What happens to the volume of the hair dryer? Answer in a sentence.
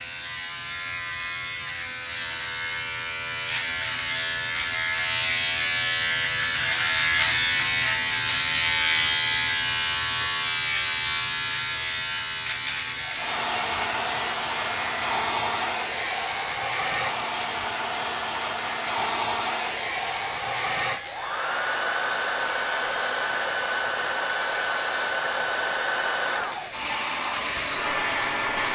The loudness of the hair dryer stays about the same.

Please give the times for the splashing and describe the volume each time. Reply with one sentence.
You can't hear the splashing here.